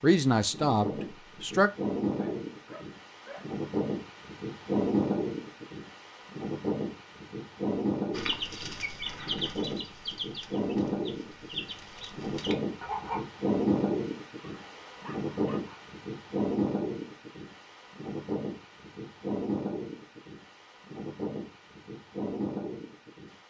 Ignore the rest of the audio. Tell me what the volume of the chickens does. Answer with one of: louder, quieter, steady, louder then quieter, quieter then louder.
quieter.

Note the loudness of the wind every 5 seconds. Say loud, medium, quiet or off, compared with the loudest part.
loud, loud, loud, loud, medium.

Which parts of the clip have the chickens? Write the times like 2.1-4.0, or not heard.
8.1-13.2.